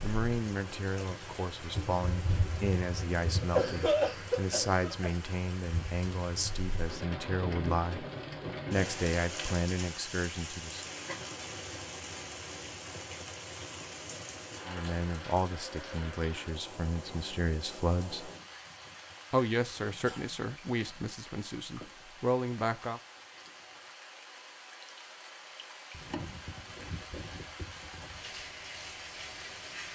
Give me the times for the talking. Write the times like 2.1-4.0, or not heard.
0.0-8.1, 8.7-10.9, 14.7-18.3, 19.3-23.0.